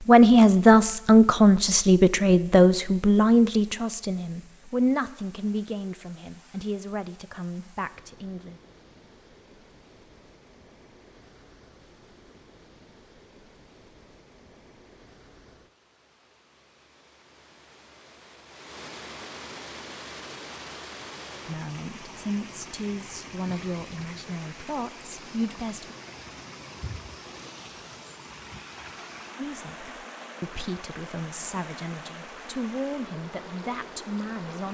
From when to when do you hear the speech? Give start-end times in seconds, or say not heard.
0.0-8.6, 21.4-25.9, 29.4-34.7.